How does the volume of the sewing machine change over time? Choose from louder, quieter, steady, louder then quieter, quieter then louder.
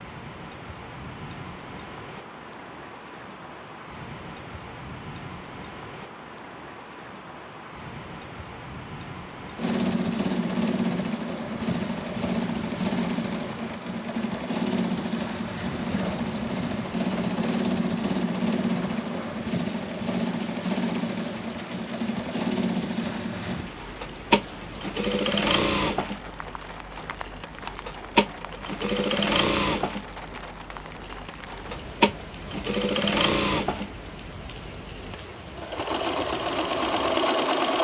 steady.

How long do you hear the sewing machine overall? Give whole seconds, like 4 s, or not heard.
28 s.